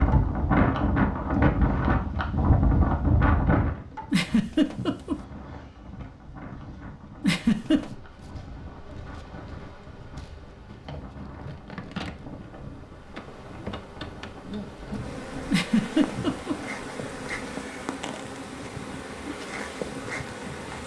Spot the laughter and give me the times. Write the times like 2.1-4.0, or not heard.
4.1-5.2, 7.2-8.0, 15.5-16.6.